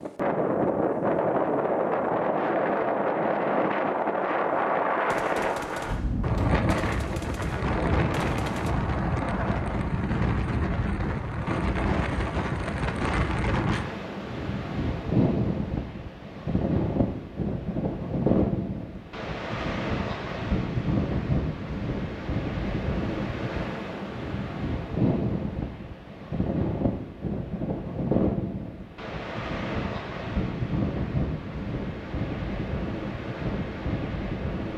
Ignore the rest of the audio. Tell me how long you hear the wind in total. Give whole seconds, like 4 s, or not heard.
35 s.